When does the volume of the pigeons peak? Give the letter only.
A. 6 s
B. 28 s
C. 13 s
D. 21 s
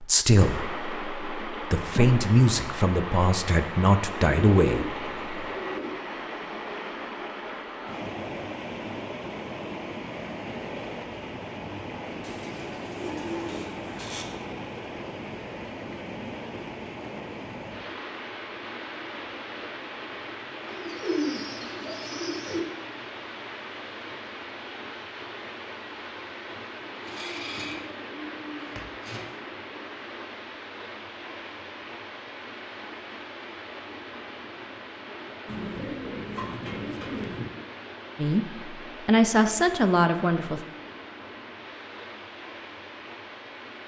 D.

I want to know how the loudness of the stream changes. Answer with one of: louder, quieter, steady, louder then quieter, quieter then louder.
quieter.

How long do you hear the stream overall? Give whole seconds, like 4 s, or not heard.
44 s.